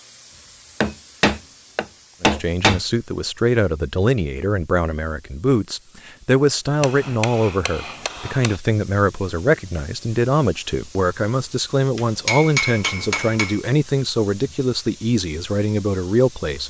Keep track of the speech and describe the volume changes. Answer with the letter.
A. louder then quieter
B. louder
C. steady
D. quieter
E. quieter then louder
C.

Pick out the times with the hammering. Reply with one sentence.
The hammering can be heard from 0.8 to 2.8 s, from 6.8 to 8.6 s and from 11.9 to 13.6 s.